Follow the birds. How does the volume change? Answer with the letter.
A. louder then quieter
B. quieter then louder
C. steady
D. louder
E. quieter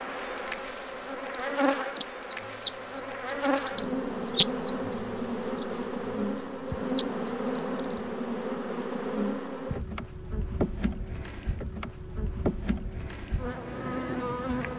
A.